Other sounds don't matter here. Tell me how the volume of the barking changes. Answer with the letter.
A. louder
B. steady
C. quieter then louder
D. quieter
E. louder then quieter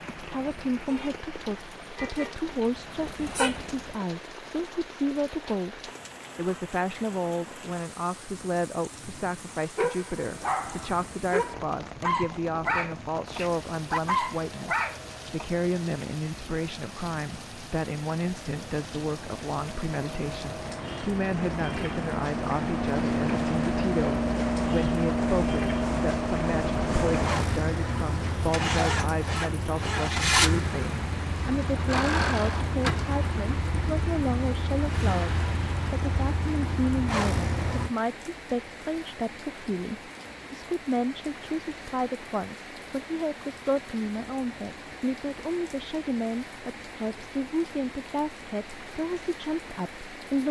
A.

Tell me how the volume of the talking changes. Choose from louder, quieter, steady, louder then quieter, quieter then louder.
steady.